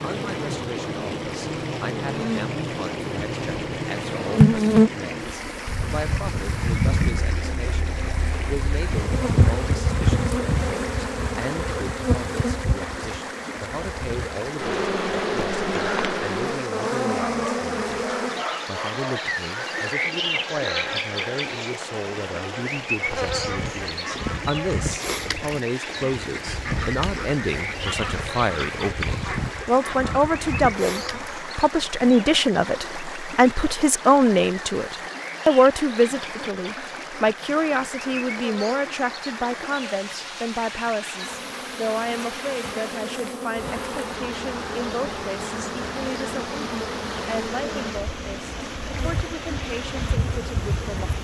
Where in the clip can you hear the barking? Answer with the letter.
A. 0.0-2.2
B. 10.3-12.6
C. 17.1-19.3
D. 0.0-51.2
C.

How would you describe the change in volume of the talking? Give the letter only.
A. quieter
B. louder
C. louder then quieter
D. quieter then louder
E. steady
C.